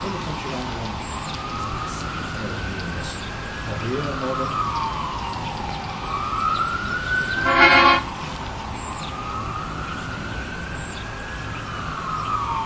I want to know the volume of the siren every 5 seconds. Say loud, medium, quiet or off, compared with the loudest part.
medium, loud, medium.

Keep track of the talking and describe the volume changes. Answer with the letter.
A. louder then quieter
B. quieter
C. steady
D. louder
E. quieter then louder
E.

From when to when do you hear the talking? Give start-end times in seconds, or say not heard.
0.0-4.5.